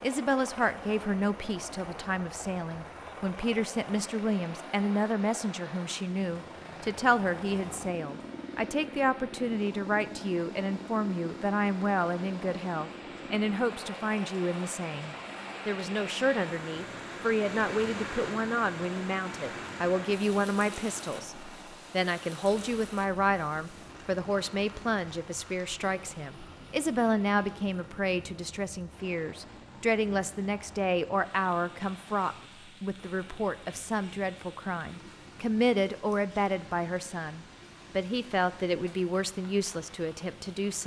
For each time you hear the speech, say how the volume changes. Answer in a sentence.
You can hear the speech from 0.0 to 40.8 s, at a steady volume.